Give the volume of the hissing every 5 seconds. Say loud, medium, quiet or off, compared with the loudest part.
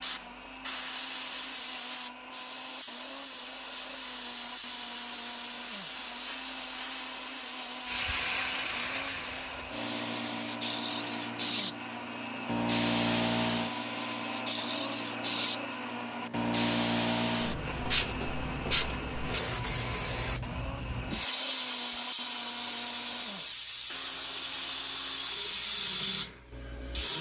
loud, loud, loud, loud, medium, medium.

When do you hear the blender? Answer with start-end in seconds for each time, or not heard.
0.0-27.1.